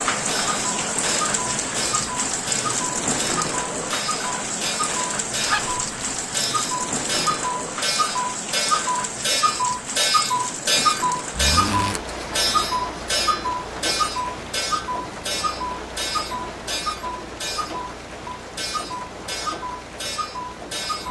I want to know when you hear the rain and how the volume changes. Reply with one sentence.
The rain can be heard from 0.0 to 21.0 s, getting quieter.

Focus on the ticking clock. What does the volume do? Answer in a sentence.
The loudness of the ticking clock goes up, then down.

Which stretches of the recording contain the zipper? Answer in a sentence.
You can hear the zipper from 5.4 to 6.2 s and from 11.3 to 12.0 s.